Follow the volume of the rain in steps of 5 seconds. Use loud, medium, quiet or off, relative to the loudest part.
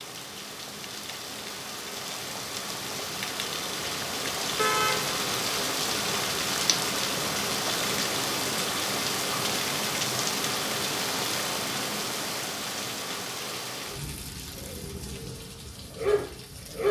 medium, loud, loud, quiet.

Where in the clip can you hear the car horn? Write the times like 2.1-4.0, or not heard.
4.5-5.2.